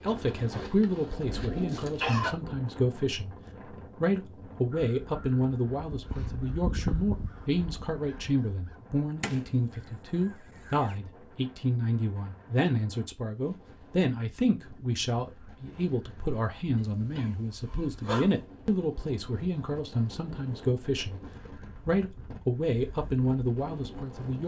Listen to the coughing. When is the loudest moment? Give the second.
2 s.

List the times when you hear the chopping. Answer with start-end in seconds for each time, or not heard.
not heard.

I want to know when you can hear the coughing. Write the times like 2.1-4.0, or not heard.
0.5-2.4, 16.8-18.4.